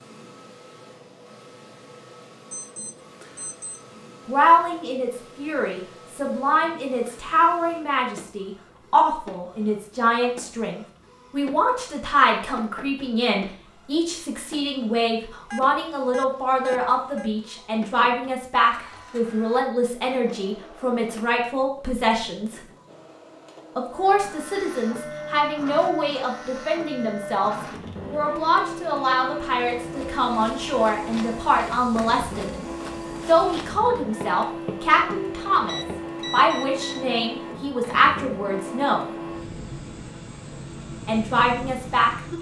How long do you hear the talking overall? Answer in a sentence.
The talking can be heard for 34 seconds in total.